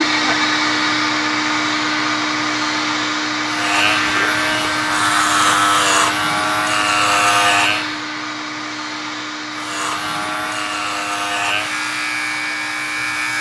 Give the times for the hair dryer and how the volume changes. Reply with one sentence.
You can hear the hair dryer from 0.0 to 13.3 s, getting quieter.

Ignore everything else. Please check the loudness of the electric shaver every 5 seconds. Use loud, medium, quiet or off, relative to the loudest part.
loud, loud, medium.